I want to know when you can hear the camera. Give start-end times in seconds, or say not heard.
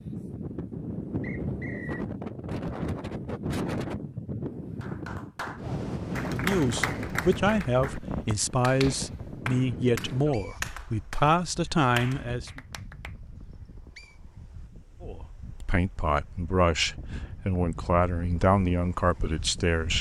not heard.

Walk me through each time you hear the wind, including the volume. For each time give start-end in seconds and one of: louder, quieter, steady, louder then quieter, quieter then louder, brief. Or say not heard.
0.0-19.9 quieter then louder.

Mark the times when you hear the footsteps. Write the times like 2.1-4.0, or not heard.
not heard.